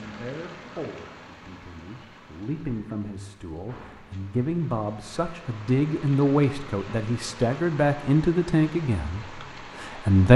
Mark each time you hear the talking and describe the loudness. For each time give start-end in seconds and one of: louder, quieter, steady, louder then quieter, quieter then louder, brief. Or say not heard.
0.0-10.3 louder.